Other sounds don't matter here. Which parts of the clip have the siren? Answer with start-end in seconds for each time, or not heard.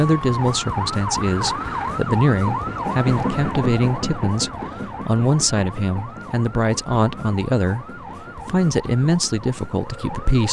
0.0-10.4.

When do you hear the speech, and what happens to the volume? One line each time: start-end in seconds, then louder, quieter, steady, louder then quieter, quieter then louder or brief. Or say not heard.
0.0-10.4 steady.